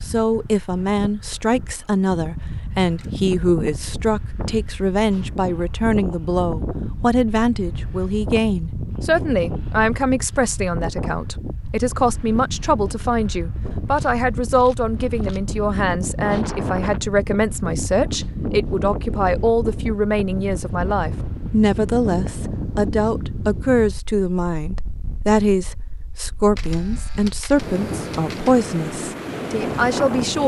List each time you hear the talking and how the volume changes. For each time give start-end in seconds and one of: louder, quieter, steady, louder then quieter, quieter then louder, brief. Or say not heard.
0.0-30.4 steady.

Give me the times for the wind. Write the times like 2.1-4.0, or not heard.
0.0-30.4.